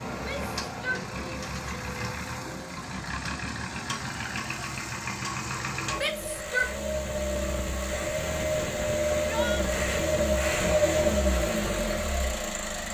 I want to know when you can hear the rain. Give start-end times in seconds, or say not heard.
not heard.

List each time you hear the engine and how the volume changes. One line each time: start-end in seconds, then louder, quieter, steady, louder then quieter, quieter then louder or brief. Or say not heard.
0.0-12.8 louder.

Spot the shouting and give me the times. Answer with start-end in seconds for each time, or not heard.
0.1-1.6, 6.0-6.7, 9.1-9.7.